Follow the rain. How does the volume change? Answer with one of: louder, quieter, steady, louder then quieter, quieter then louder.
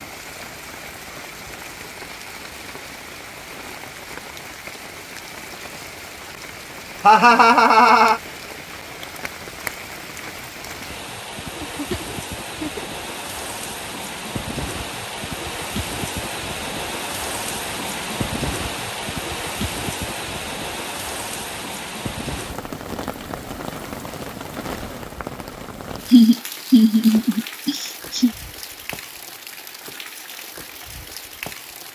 louder then quieter.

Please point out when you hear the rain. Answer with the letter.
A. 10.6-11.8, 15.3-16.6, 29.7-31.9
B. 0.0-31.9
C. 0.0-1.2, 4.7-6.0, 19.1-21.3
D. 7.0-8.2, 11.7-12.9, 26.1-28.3
B.